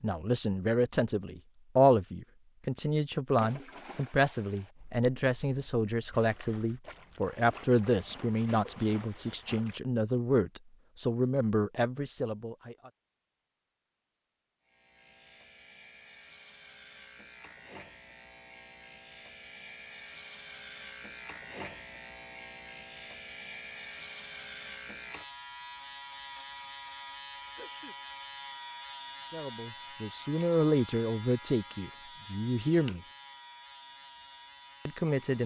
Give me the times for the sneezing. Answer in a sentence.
The sneezing can be heard from 27.4 to 27.9 s.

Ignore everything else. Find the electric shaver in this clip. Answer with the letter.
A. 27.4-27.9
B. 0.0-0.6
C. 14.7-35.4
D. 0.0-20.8
C.